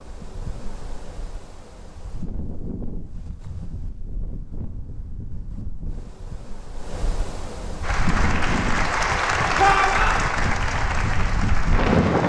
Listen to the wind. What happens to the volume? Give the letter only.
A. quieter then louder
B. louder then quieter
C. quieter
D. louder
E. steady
D.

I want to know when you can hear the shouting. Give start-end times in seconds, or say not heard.
9.6-10.2.